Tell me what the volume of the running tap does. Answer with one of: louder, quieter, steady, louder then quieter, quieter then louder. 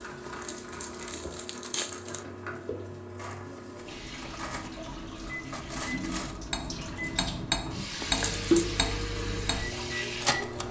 louder.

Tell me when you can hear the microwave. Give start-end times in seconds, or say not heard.
0.0-10.6.